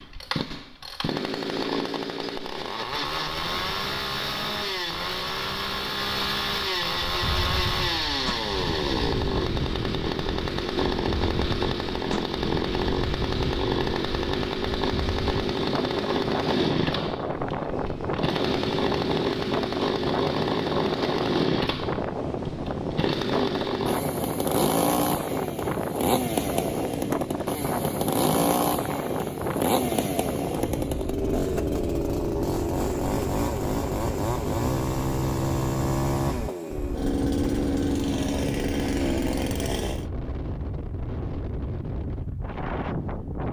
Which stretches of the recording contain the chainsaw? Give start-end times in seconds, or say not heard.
0.0-40.0.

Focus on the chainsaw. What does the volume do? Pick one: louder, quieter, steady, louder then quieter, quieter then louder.
steady.